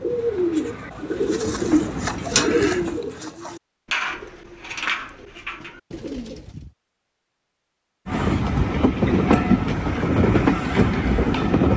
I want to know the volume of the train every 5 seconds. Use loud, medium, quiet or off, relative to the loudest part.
quiet, loud, loud.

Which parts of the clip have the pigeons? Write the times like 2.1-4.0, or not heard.
0.0-6.7.